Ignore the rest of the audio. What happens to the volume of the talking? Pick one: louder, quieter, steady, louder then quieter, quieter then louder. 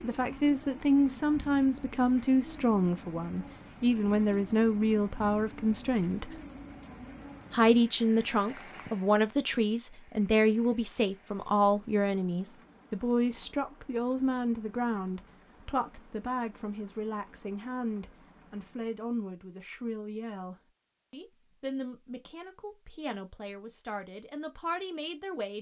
quieter.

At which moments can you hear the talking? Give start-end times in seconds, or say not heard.
0.0-6.4, 7.5-25.5.